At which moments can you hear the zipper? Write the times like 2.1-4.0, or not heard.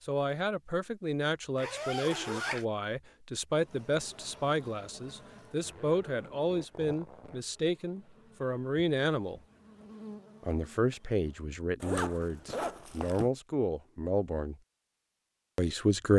1.6-2.6, 5.6-7.4, 11.8-13.3.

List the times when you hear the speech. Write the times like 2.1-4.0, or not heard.
0.1-9.4, 10.4-14.6, 15.6-16.1.